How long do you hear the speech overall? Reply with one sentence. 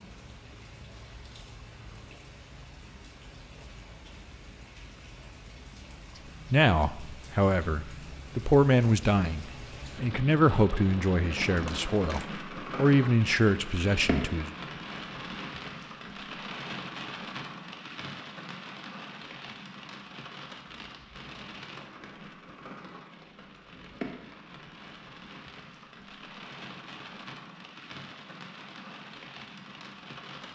The speech can be heard for 8 seconds in total.